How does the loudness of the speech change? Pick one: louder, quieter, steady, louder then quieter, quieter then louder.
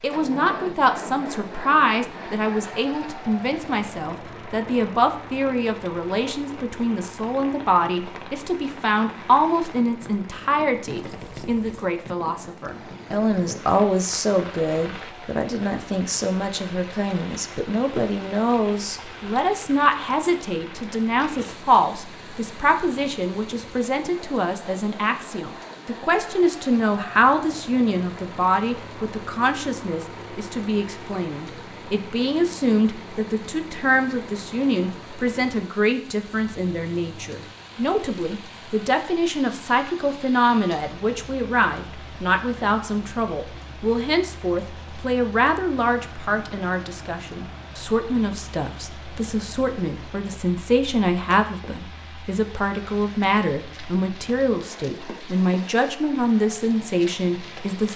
steady.